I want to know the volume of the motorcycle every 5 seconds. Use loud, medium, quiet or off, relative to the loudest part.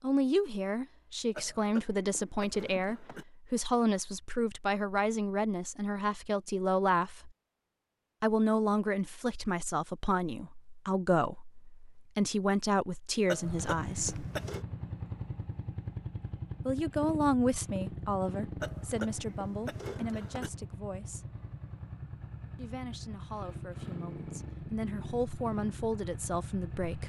off, off, loud, loud, loud, loud.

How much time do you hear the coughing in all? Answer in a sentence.
The coughing can be heard for 5 seconds in total.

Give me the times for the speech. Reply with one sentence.
You can hear the speech from 0.0 to 7.3 s, from 8.2 to 14.2 s, from 16.6 to 21.3 s and from 22.6 to 27.0 s.